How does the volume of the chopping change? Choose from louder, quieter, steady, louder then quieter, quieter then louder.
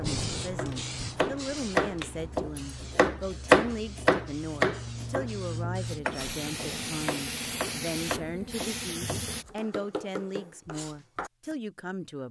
louder then quieter.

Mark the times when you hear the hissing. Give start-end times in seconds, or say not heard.
0.0-9.4.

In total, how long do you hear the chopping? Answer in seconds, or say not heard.
11 s.